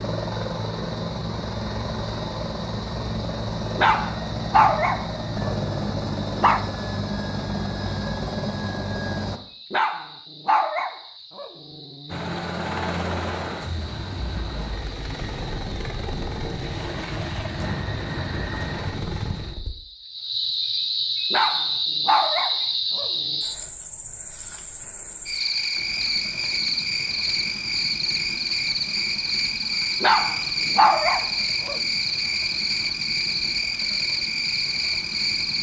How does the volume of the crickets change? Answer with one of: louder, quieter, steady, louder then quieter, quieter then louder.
louder.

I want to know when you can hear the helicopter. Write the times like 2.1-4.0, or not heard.
0.0-9.4, 12.1-19.7, 25.7-35.5.